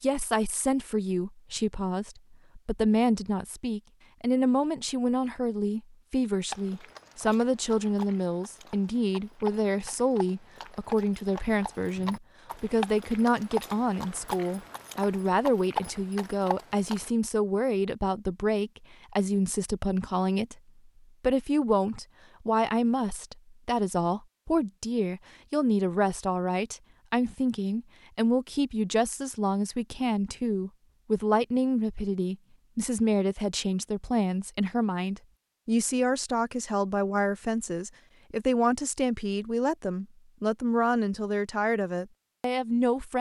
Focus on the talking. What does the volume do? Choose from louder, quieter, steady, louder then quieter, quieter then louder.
steady.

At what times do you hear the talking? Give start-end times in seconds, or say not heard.
0.0-20.6, 21.2-43.1.